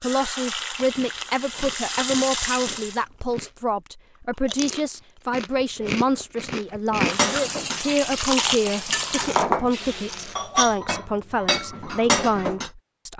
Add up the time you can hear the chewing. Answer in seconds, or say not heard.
9 s.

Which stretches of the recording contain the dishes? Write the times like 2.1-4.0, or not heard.
7.0-9.7, 10.3-12.7.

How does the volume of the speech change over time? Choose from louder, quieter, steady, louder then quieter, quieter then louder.
steady.